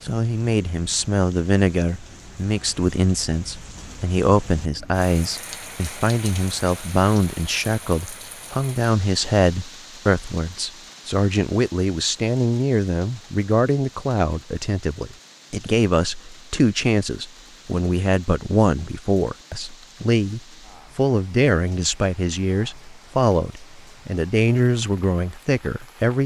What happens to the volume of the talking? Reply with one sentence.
The loudness of the talking stays about the same.